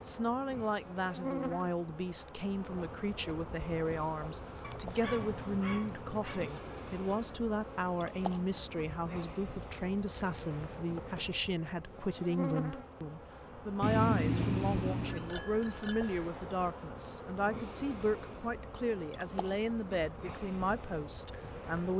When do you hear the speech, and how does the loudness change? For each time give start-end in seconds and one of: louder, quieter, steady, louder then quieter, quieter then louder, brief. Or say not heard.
0.0-21.9 steady.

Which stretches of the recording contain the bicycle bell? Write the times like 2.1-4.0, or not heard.
5.0-7.3, 13.8-16.2.